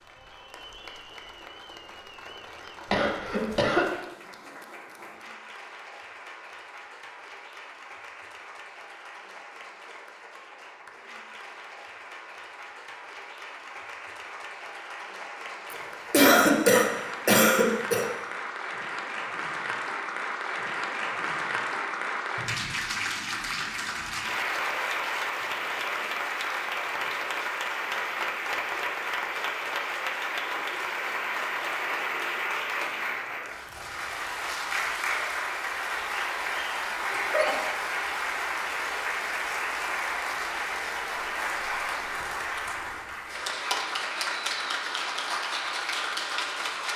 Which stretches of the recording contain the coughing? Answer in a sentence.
The coughing can be heard from 2.9 to 3.9 s, from 15.7 to 18.1 s and from 37.1 to 37.7 s.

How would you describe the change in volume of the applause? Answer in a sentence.
The loudness of the applause goes up.